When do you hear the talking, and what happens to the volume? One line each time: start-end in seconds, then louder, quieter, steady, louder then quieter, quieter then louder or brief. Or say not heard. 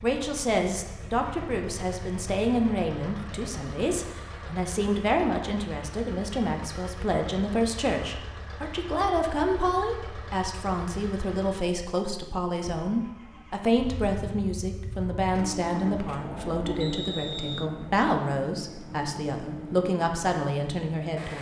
0.0-21.3 steady.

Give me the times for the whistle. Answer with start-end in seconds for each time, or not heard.
16.8-17.7.